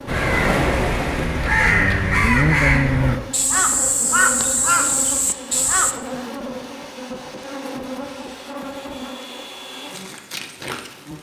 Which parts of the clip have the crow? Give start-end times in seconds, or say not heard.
0.1-6.0.